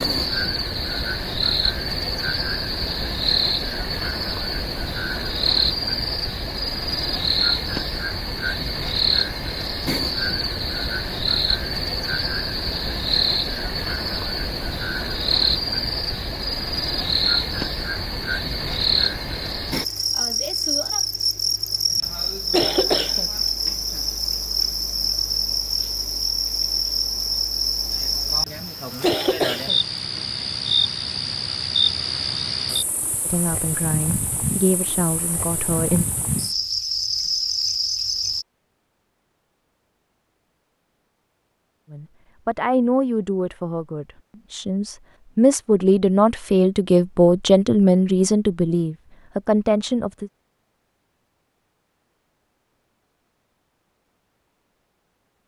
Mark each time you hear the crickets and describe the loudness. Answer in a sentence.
You can hear the crickets from 0.0 to 38.5 s, at a steady volume.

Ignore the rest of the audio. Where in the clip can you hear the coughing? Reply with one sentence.
The coughing can be heard from 21.9 to 23.8 s and from 28.4 to 30.2 s.